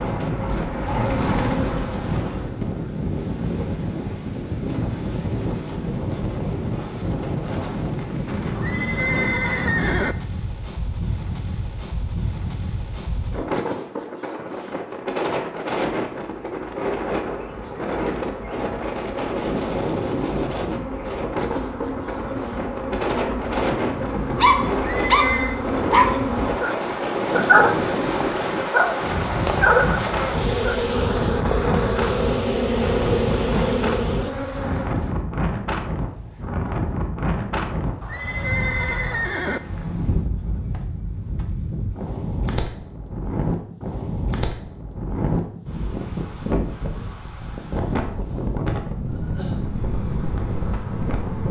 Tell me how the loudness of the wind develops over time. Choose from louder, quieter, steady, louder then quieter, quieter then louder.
steady.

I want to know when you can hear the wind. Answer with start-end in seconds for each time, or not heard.
0.0-51.4.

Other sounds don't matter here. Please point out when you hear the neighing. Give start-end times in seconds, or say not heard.
8.6-10.2, 24.8-25.6, 38.0-39.6.